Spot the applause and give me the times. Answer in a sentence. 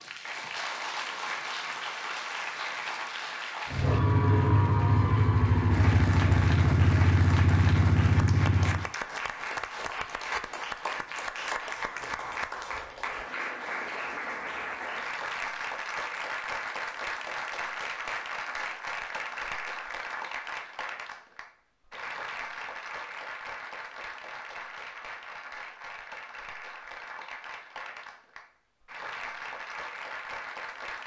You can hear the applause from 0.0 to 31.0 s.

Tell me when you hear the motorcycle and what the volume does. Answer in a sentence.
The motorcycle can be heard from 3.6 to 8.8 s, at a steady volume.